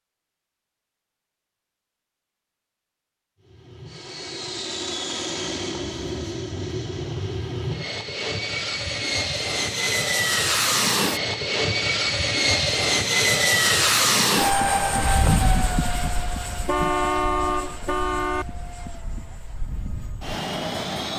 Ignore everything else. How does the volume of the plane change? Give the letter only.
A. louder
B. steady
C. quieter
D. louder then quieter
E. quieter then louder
D.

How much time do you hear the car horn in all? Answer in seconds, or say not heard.
2 s.